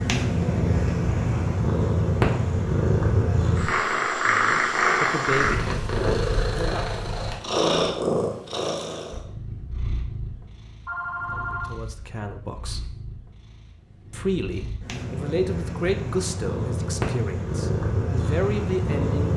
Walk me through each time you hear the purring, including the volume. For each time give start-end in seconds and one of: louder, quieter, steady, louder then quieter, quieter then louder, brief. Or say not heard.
0.0-19.3 quieter then louder.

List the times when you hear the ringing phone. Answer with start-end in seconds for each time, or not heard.
10.8-11.8.